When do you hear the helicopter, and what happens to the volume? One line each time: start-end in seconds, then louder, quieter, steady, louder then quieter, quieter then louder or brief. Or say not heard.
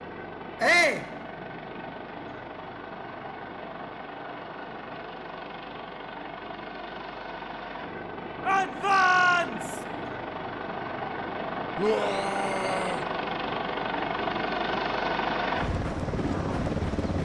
0.0-17.1 louder.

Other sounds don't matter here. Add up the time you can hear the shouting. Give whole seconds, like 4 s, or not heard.
3 s.